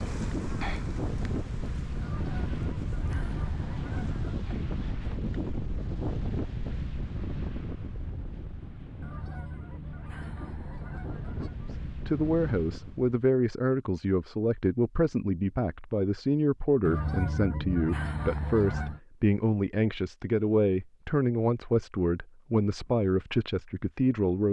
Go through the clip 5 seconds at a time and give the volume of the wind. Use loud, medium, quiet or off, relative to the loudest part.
loud, loud, medium, off, off.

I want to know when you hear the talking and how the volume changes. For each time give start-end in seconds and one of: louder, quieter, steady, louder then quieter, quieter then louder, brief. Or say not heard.
12.1-24.4 steady.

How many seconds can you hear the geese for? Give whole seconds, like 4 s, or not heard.
7 s.